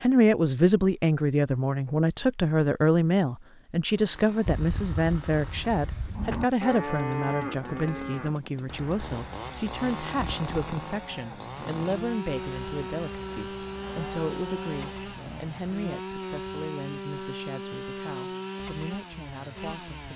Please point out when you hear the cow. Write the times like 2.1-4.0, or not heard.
4.5-15.8.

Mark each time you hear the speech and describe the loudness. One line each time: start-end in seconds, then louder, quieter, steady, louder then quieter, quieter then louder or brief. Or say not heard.
0.0-20.1 quieter.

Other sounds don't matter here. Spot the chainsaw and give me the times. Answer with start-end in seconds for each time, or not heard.
3.9-20.1.